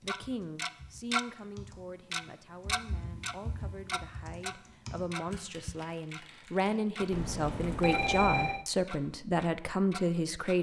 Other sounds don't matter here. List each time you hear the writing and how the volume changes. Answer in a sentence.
The writing can't be heard in this clip.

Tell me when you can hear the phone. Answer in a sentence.
You can hear the phone from 7.1 to 8.7 s.